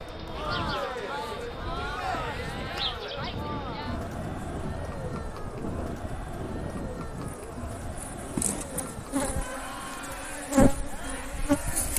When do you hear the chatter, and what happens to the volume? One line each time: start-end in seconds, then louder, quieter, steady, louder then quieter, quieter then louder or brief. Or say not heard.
0.1-11.9 quieter.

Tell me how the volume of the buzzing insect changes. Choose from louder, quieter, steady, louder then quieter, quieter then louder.
quieter then louder.